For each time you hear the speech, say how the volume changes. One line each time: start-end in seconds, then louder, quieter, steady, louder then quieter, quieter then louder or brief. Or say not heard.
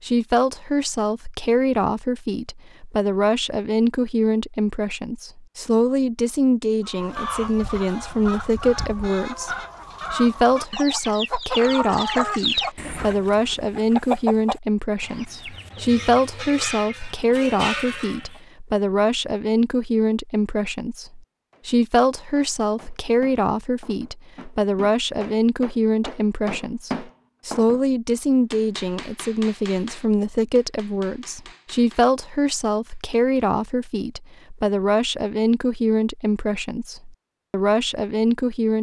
0.0-38.7 steady.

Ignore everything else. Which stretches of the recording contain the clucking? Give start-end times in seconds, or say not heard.
6.8-18.4.